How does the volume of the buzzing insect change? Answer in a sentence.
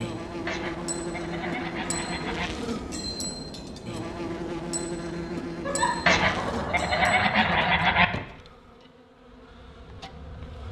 The loudness of the buzzing insect goes down.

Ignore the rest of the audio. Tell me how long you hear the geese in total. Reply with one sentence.
The geese can be heard for 4 seconds in total.